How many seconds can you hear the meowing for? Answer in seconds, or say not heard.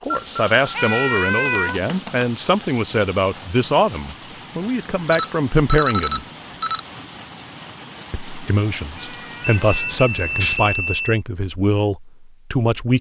3 s.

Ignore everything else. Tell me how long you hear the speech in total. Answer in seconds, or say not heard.
11 s.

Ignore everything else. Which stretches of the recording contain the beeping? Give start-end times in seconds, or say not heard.
0.1-2.2, 4.8-6.8, 9.4-11.2.